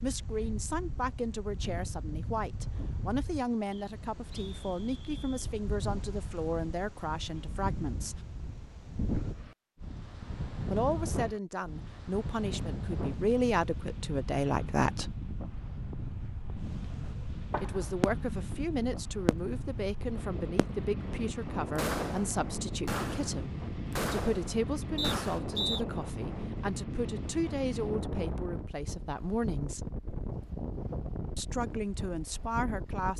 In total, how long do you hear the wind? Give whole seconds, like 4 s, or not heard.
33 s.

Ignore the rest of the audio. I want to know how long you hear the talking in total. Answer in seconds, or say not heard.
27 s.